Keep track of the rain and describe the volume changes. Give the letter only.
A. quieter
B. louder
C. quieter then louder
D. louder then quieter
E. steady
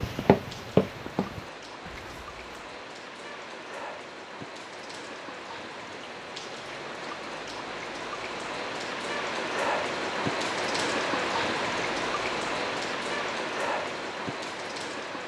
B.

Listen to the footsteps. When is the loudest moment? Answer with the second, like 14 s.
1 s.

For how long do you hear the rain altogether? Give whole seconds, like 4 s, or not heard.
15 s.